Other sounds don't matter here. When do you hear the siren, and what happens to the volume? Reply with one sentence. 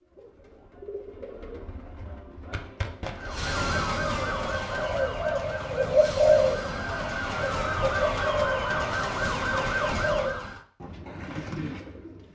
The siren can be heard from 3.1 to 10.7 s, getting quieter then louder.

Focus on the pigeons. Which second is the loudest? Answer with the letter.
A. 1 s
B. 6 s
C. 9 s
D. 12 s
B.